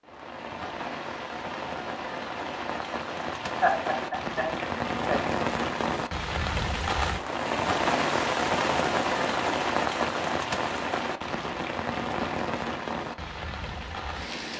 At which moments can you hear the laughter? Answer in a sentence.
You can hear the laughter from 3.6 to 5.2 s.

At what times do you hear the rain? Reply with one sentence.
You can hear the rain from 0.0 to 14.5 s.